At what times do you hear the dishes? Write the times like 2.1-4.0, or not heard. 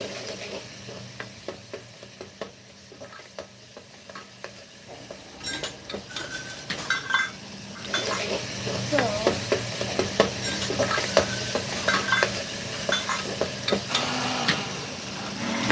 4.8-13.2.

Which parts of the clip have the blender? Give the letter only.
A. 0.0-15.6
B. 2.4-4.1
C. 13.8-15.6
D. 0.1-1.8
C.